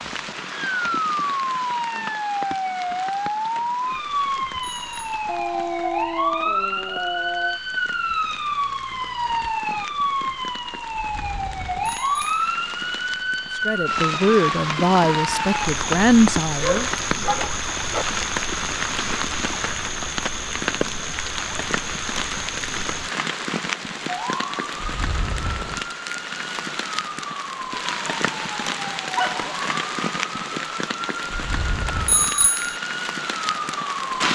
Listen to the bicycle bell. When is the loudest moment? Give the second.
32 s.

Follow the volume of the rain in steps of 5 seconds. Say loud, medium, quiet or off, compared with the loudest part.
medium, quiet, medium, loud, loud, loud, loud.